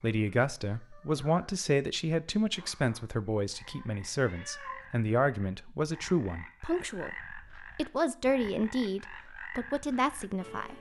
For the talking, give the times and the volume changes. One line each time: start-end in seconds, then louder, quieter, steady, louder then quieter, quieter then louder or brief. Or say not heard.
0.0-10.7 steady.